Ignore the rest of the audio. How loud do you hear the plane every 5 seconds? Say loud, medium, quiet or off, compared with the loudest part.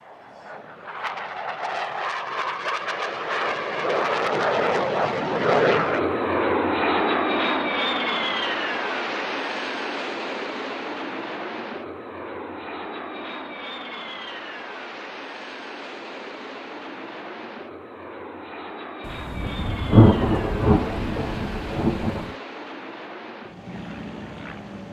loud, loud, medium, quiet, quiet.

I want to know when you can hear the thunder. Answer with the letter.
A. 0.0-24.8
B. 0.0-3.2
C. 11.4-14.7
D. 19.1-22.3
D.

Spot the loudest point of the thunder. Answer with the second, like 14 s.
20 s.